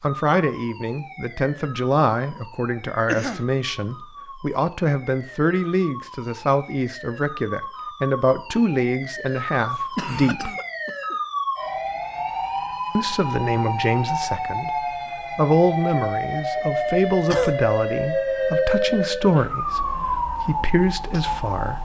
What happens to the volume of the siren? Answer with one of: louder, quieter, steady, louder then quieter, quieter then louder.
louder.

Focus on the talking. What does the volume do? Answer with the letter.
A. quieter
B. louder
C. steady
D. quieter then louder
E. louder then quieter
C.